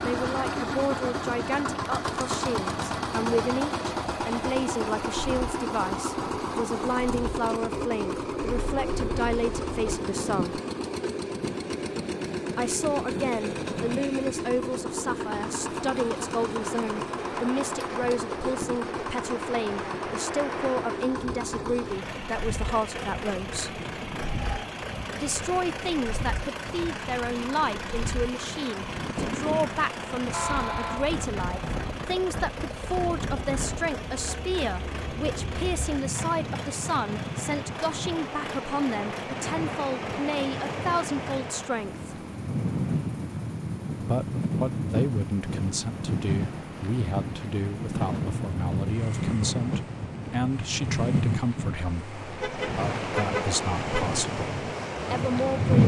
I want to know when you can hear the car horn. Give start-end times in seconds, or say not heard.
8.4-9.8, 30.3-31.1, 52.4-54.0.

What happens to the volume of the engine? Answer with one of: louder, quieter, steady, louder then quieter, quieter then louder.
quieter.